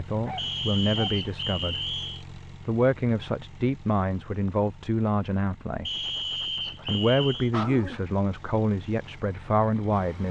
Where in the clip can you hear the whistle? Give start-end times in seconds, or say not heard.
0.3-2.2, 5.8-7.5.